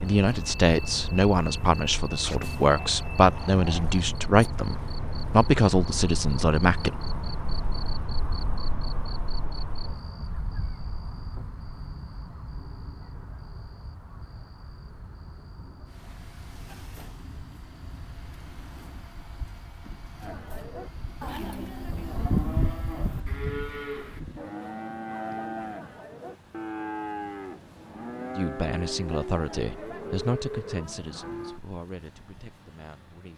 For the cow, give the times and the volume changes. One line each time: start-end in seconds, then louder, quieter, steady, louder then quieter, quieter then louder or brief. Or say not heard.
20.2-31.6 steady.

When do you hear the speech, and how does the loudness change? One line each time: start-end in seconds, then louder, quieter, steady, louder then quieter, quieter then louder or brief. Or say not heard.
0.0-7.0 steady
28.4-33.3 quieter.